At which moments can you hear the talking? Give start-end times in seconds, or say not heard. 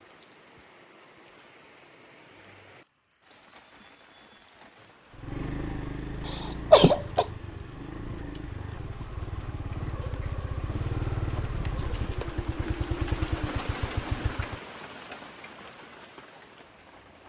not heard.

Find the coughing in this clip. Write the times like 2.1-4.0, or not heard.
6.2-7.2.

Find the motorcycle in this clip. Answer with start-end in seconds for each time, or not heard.
5.1-14.6.